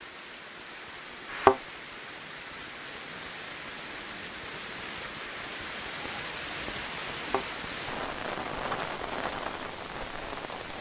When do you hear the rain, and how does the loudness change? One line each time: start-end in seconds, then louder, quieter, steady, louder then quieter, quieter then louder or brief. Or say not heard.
0.0-10.7 louder.